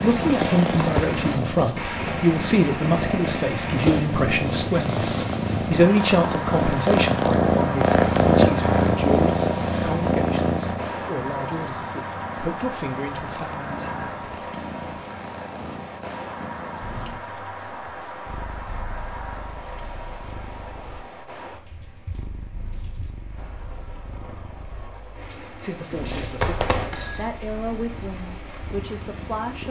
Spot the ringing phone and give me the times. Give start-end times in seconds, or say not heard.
25.9-27.3.